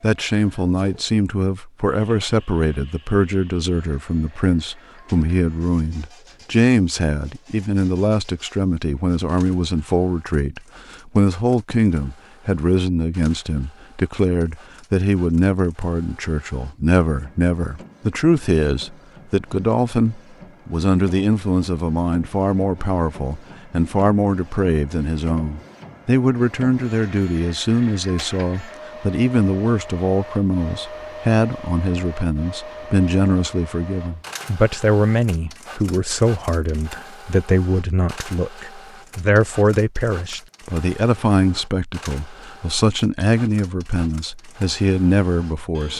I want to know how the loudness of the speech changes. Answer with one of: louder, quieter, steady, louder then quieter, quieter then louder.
steady.